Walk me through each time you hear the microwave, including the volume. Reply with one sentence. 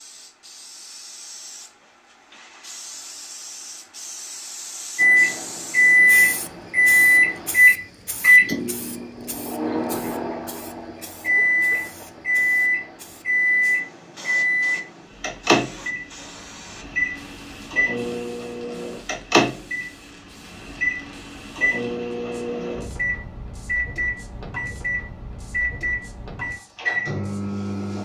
You can hear the microwave from 5.0 to 28.0 s, getting quieter.